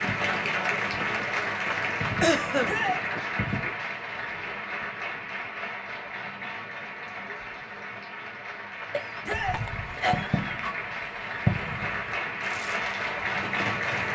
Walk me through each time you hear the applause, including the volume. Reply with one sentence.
The applause can be heard from 0.0 to 14.0 s, getting quieter then louder.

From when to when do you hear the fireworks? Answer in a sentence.
You can hear the fireworks from 0.0 to 3.7 s and from 9.3 to 14.0 s.